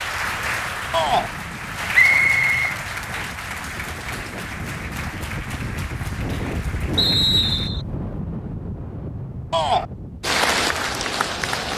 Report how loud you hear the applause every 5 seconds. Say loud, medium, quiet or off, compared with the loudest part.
medium, quiet, loud.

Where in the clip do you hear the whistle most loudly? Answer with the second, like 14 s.
2 s.